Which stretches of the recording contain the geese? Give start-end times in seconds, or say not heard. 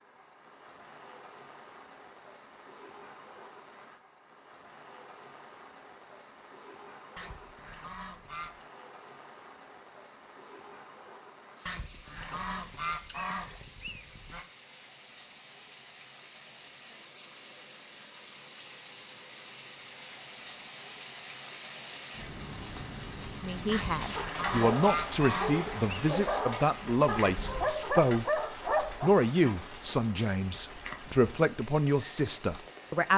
7.2-8.7, 11.7-14.4, 23.7-25.9.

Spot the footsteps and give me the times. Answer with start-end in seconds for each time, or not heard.
not heard.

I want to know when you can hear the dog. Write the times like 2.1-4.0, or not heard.
24.5-29.6.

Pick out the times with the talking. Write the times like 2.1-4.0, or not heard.
23.4-28.2, 29.0-33.1.